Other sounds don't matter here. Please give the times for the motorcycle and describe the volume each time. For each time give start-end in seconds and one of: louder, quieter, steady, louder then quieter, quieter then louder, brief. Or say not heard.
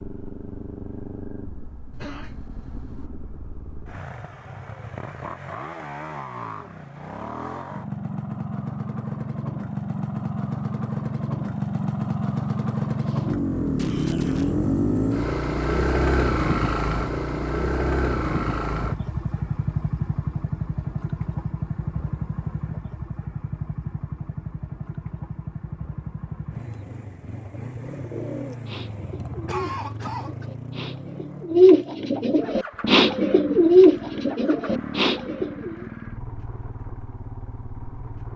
0.0-38.3 louder then quieter.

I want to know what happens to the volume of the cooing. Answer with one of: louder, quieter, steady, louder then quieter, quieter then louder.
louder.